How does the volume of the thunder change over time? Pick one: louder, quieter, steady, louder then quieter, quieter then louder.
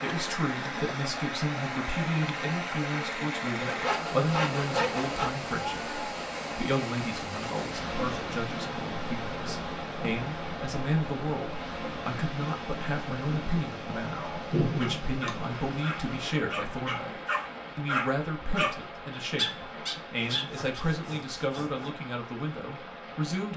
louder then quieter.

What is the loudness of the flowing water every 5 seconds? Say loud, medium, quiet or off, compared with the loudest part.
loud, loud, loud, medium, medium.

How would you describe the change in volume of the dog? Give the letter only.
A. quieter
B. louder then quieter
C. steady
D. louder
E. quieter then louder
D.